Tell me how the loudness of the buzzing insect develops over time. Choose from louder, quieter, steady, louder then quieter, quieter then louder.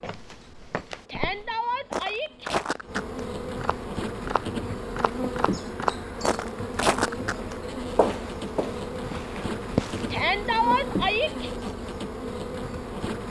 louder.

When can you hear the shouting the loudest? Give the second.
11 s.